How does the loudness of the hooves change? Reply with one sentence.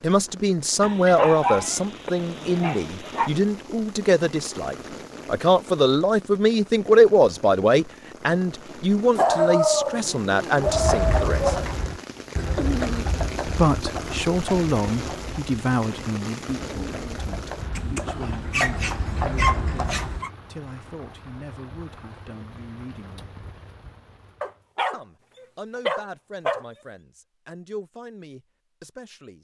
The loudness of the hooves goes down, then up.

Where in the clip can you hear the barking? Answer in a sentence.
You can hear the barking from 0.8 to 3.3 s, from 9.2 to 11.8 s, from 17.8 to 20.3 s and from 24.4 to 26.6 s.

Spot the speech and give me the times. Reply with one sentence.
You can hear the speech from 0.0 to 11.6 s, from 13.4 to 23.4 s and from 24.9 to 29.3 s.